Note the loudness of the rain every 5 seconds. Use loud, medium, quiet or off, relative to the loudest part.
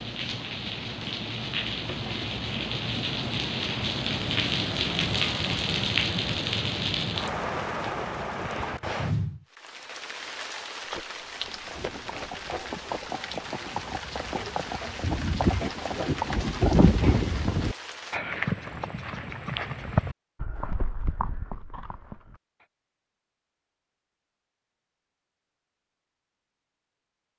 loud, loud, medium, medium, off, off.